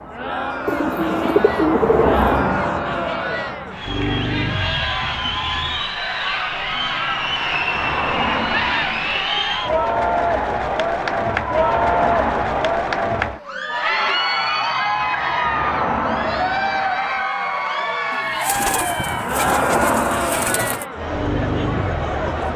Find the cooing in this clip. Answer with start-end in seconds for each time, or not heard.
0.7-2.5, 18.1-20.9.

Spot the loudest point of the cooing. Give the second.
2 s.